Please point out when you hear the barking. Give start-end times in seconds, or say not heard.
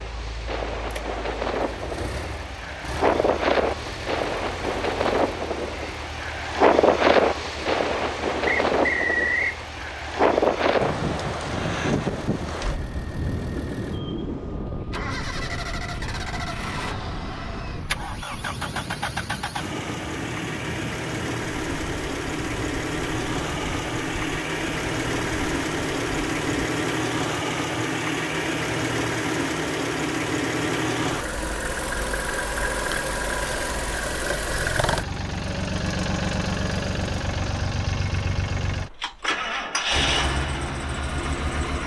not heard.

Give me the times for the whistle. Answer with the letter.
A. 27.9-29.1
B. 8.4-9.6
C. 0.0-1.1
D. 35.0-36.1
B.